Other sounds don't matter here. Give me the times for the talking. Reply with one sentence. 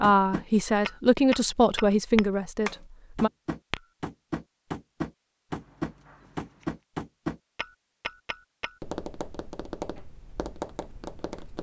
The talking can be heard from 0.0 to 3.3 s.